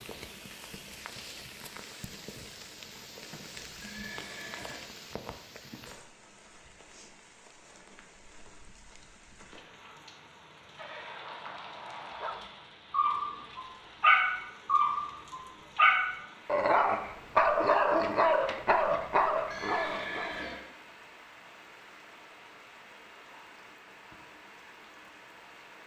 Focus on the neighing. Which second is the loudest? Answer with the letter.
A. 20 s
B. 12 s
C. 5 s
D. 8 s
A.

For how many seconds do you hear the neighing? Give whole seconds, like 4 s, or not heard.
4 s.